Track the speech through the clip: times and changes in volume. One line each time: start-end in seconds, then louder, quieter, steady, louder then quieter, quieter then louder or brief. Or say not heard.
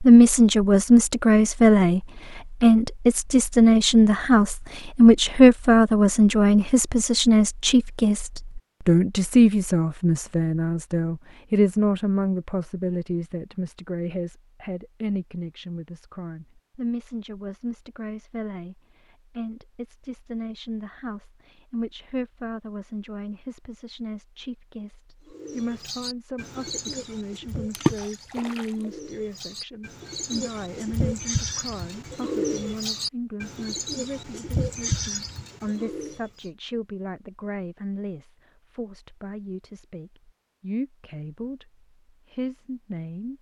0.0-43.3 quieter.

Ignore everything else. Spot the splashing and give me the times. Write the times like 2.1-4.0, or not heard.
27.7-28.9.